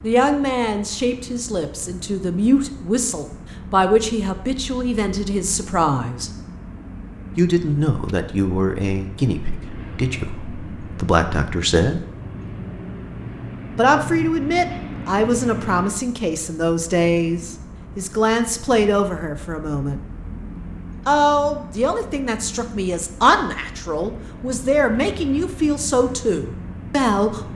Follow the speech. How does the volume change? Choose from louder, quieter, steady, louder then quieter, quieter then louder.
steady.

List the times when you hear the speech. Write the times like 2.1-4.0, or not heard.
0.0-6.3, 7.3-12.0, 13.8-20.0, 21.1-27.5.